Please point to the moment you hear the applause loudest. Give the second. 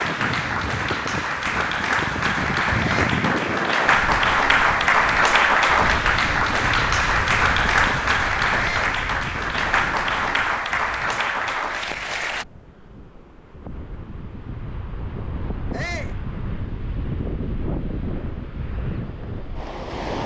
5 s.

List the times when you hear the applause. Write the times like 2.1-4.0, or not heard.
0.0-12.4.